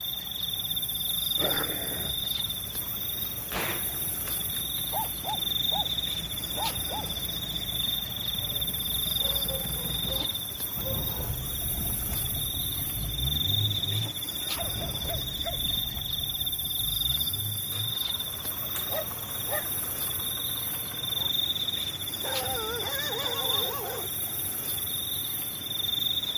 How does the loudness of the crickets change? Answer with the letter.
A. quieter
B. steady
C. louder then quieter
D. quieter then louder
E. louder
B.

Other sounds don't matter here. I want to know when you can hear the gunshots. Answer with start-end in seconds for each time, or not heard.
3.5-5.3.